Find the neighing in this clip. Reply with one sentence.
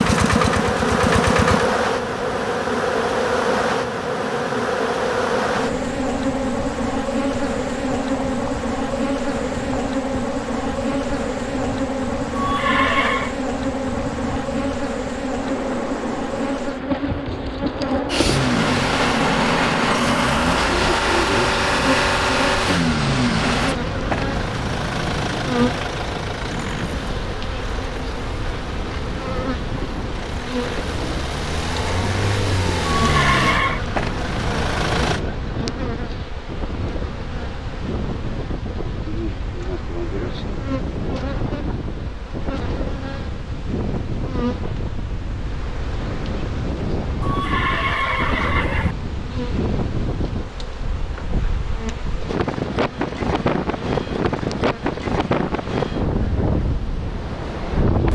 You can hear the neighing from 12.3 to 13.3 s, from 32.9 to 33.8 s and from 47.2 to 49.0 s.